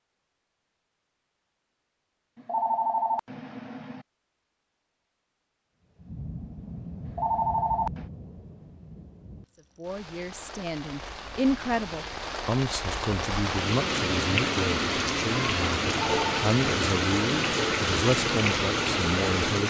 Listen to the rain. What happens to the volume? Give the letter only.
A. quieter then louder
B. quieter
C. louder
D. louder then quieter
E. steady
C.